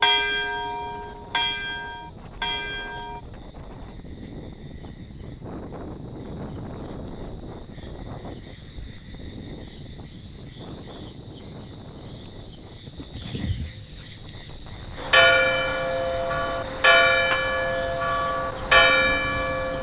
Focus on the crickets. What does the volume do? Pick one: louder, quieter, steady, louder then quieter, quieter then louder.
louder.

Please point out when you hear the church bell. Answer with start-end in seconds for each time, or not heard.
0.0-3.2, 14.9-19.7.